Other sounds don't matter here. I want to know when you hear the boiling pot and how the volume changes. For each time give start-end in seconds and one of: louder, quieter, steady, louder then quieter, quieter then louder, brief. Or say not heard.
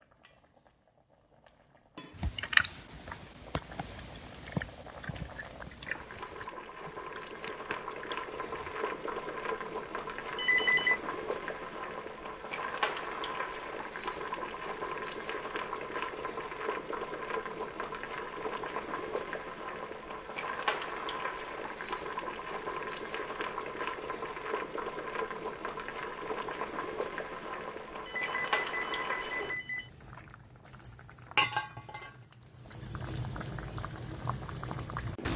0.0-35.3 louder.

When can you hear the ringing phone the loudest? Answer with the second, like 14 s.
11 s.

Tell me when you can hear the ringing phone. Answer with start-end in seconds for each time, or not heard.
10.3-11.0, 28.1-29.9.